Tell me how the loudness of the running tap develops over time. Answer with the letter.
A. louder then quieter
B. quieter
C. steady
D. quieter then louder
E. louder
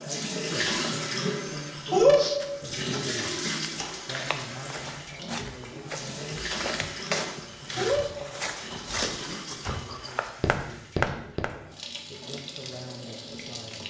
B.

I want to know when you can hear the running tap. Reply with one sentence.
The running tap can be heard from 0.0 to 13.8 s.